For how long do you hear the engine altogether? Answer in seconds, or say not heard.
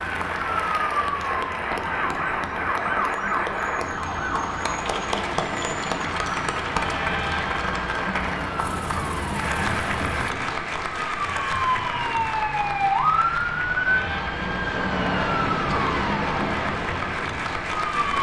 2 s.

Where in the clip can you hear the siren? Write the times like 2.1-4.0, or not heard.
0.0-18.1.